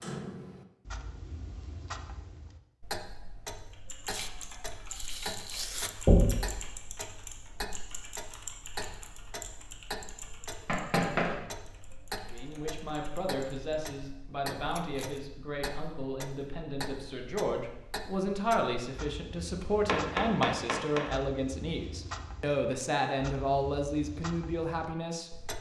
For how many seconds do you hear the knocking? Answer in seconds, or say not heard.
2 s.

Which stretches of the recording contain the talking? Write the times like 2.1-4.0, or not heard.
12.2-25.3.